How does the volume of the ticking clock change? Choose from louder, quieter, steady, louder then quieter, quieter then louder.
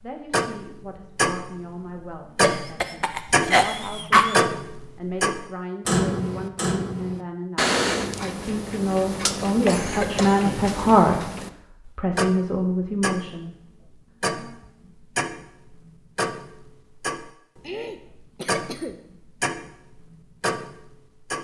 quieter.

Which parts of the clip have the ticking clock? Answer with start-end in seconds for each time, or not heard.
0.0-21.3.